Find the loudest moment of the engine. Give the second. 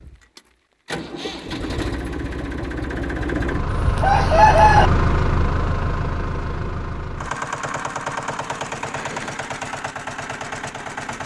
5 s.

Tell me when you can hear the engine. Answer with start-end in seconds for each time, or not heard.
0.0-11.2.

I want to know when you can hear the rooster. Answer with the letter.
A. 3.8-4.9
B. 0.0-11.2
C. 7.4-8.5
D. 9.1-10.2
A.